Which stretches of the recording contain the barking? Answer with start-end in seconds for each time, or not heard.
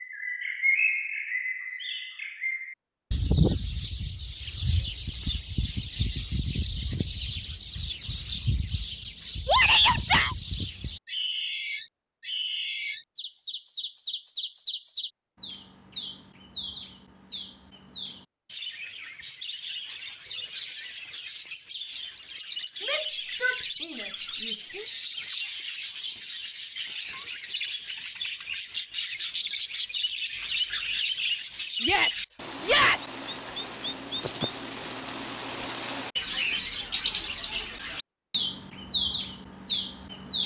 not heard.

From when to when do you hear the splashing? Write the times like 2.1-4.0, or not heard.
not heard.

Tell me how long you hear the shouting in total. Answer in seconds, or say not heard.
4 s.